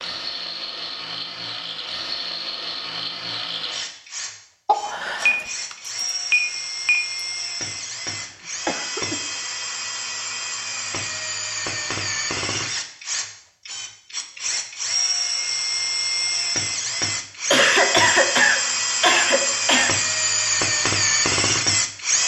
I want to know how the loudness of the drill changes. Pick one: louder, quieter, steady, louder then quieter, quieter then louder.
louder.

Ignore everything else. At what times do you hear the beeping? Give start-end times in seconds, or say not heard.
5.2-7.2.